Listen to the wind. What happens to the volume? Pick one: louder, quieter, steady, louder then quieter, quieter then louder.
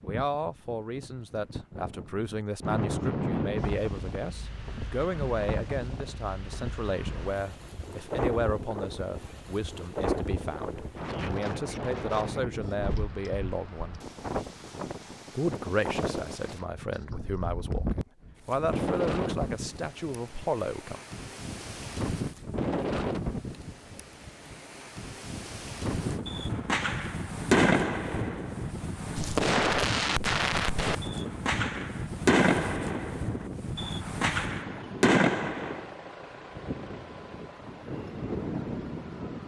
steady.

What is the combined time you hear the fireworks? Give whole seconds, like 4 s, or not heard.
10 s.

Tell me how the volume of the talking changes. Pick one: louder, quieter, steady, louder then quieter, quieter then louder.
steady.